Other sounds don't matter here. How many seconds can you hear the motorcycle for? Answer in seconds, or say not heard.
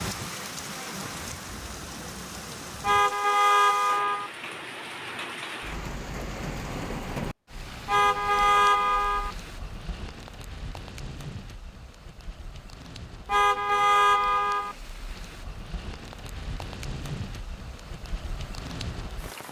not heard.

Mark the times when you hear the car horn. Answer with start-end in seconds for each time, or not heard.
2.8-4.3, 7.8-9.3, 13.2-14.8.